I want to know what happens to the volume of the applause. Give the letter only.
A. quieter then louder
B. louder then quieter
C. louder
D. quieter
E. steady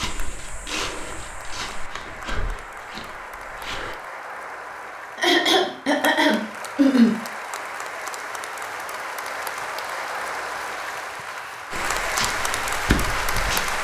C.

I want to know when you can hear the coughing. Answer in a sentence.
The coughing can be heard from 5.2 to 7.1 s.